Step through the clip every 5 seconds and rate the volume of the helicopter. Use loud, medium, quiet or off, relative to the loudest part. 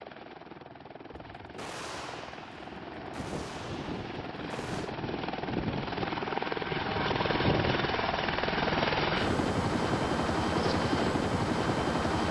quiet, loud, loud.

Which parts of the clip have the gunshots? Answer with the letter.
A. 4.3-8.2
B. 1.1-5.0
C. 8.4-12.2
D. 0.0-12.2
B.